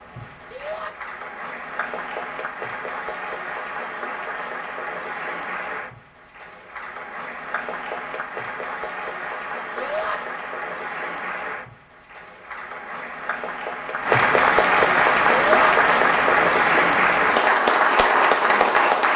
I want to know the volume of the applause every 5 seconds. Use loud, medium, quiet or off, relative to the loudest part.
quiet, quiet, medium, loud.